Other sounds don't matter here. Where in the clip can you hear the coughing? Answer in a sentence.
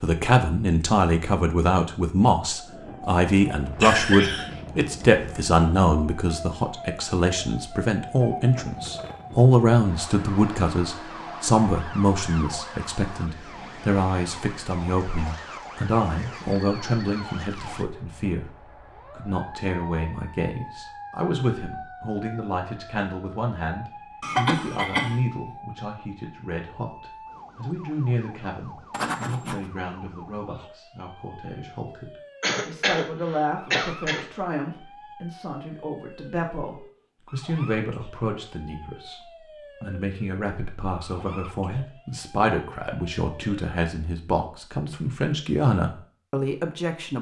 You can hear the coughing from 3.8 to 5.2 s, from 24.2 to 25.2 s and from 32.4 to 34.2 s.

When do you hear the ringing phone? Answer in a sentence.
You can hear the ringing phone from 28.9 to 29.6 s.